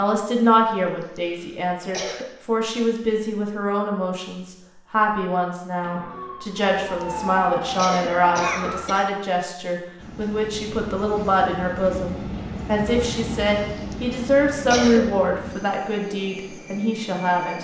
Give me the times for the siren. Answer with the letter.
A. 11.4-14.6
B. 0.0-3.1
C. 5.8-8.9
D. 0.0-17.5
C.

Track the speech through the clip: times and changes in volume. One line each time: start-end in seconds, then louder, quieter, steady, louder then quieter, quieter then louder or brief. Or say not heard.
0.0-17.5 steady.